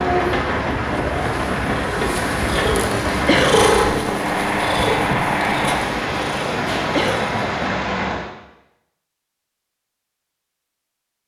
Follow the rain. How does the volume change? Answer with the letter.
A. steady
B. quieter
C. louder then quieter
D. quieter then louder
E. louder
A.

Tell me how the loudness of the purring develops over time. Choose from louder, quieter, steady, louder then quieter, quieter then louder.
louder then quieter.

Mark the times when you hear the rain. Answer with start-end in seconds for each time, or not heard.
0.0-8.3.